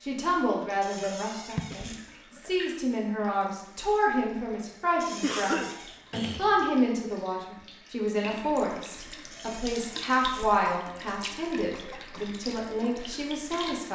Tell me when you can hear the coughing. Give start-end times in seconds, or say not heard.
1.6-2.4, 5.2-6.6, 10.2-12.3.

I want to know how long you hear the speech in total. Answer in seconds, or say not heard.
14 s.